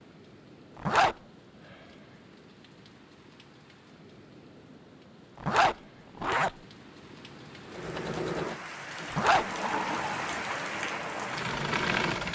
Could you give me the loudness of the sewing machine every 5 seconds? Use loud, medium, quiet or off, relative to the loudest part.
off, loud, loud.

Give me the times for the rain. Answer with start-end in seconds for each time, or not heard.
0.0-12.2.